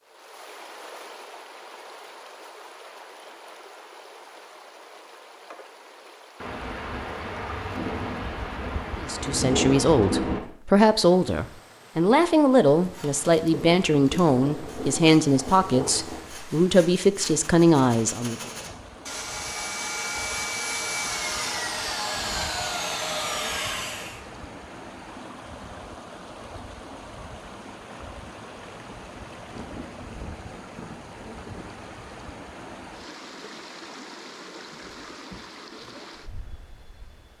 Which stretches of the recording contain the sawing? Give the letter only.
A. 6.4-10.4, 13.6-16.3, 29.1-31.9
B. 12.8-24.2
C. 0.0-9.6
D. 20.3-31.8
B.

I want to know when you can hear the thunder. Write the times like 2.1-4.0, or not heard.
6.4-10.4, 13.6-16.3, 29.1-31.9.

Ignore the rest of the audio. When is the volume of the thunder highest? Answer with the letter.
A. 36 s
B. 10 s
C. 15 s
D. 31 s
B.